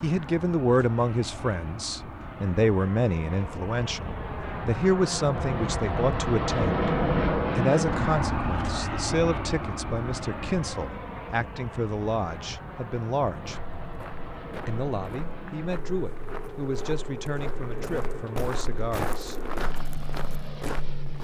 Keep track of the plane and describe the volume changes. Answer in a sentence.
The volume of the plane goes up, then down.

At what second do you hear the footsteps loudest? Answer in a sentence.
The loudest moment of the footsteps is at 19 seconds.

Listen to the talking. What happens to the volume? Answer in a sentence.
The loudness of the talking goes down.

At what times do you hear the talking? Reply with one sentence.
The talking can be heard from 0.0 to 6.8 s, from 7.5 to 13.6 s and from 14.7 to 19.4 s.